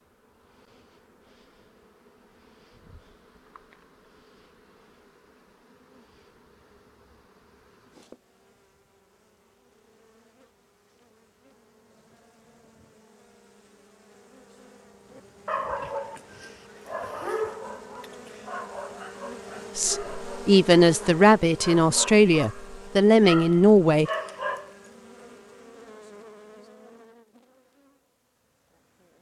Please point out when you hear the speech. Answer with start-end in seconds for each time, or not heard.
19.8-24.1.